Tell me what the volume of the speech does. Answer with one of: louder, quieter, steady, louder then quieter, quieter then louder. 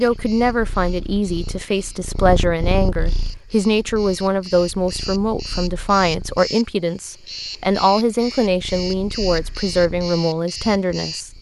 steady.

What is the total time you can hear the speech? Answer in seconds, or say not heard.
11 s.